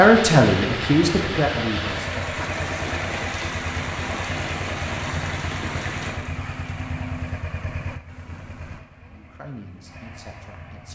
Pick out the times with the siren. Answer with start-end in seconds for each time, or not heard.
not heard.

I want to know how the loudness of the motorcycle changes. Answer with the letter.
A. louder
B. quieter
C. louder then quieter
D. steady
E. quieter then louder
B.